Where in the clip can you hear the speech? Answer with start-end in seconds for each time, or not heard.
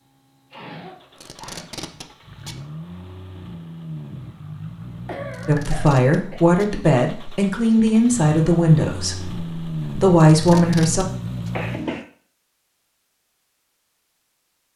5.5-11.1.